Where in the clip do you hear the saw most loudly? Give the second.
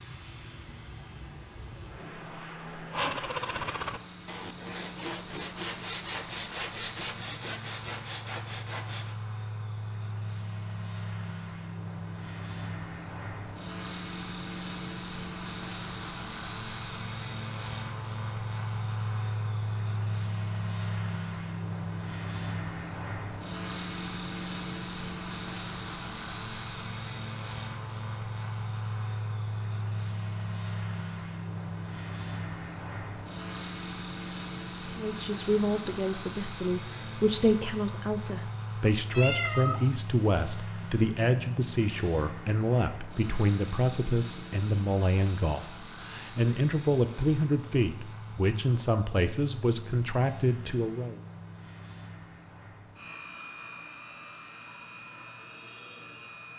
3 s.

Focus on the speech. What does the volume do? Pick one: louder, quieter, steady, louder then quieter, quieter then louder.
steady.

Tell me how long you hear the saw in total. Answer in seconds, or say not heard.
6 s.